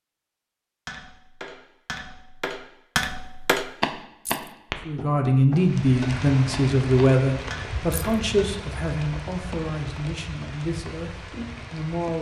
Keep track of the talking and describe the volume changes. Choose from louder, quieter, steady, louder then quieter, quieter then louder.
quieter.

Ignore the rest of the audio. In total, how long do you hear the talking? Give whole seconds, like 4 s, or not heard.
7 s.